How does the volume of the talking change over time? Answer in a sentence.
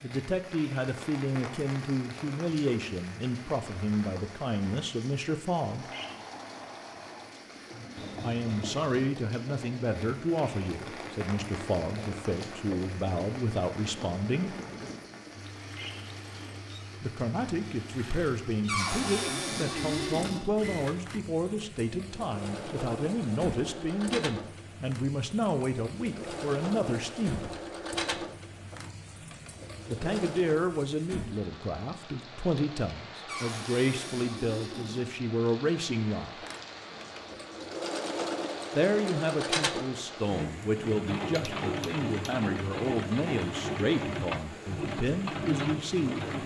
The volume of the talking stays about the same.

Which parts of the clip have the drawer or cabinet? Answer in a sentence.
You can hear the drawer or cabinet from 8.0 to 9.0 s, from 18.6 to 20.4 s and from 33.2 to 35.0 s.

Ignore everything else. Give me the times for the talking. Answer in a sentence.
You can hear the talking from 0.0 to 5.9 s, from 8.2 to 14.6 s, from 17.0 to 27.5 s, from 29.9 to 36.5 s and from 38.8 to 46.4 s.